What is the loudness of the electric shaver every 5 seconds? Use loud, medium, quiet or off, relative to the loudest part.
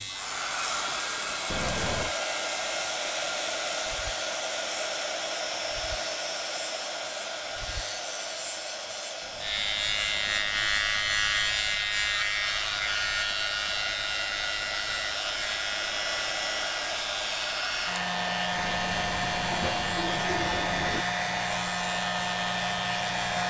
medium, medium, loud, medium, medium.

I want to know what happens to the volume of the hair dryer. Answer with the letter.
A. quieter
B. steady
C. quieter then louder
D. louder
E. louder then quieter
C.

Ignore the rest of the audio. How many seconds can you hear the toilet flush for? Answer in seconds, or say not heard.
5 s.